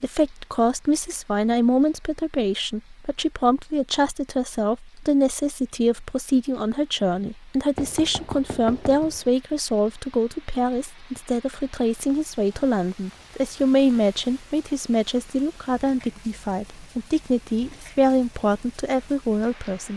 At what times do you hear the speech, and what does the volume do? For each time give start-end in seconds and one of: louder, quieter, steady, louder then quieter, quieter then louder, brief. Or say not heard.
0.0-19.9 steady.